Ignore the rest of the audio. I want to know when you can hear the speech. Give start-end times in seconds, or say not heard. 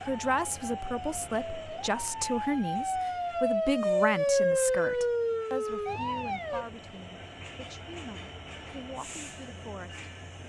0.0-10.4.